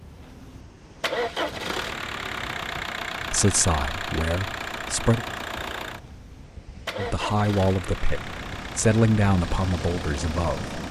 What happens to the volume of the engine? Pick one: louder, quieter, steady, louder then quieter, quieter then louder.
quieter.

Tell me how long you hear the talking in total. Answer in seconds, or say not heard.
6 s.